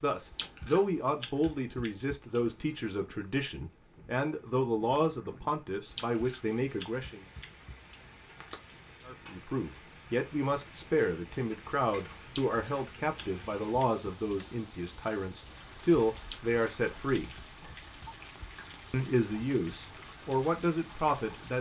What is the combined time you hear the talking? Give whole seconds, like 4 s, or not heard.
18 s.